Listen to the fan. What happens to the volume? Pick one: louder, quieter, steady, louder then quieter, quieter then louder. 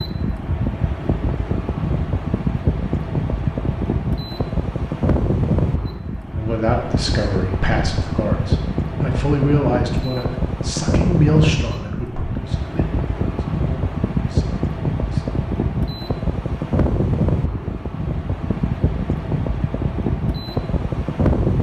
steady.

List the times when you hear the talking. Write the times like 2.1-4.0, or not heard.
6.3-15.2.